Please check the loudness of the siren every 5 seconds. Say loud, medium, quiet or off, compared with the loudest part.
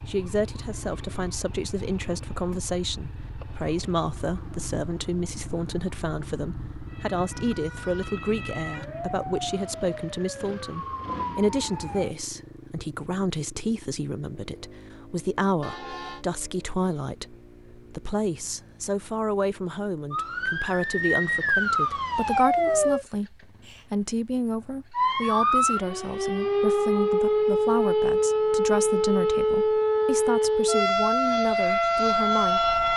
quiet, quiet, quiet, off, loud, loud, loud.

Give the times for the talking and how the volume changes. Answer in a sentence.
You can hear the talking from 0.1 to 32.7 s, at a steady volume.